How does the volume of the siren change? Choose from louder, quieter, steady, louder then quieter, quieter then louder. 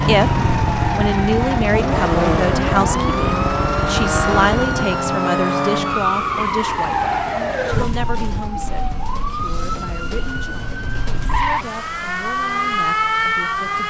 quieter then louder.